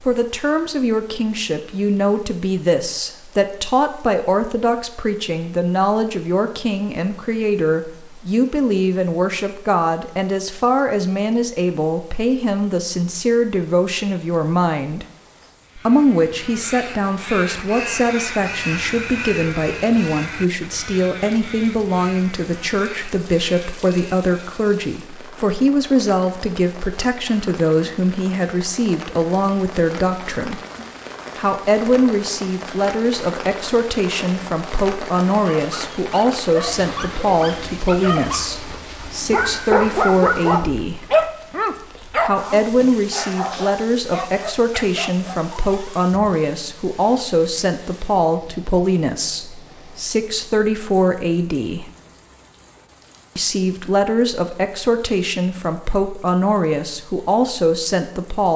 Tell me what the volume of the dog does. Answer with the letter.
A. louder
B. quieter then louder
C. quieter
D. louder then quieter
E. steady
D.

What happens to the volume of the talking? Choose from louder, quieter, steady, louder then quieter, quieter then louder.
steady.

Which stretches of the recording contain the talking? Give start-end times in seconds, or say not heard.
0.0-15.1, 15.8-30.6, 31.4-41.0, 42.2-51.9, 53.4-58.5.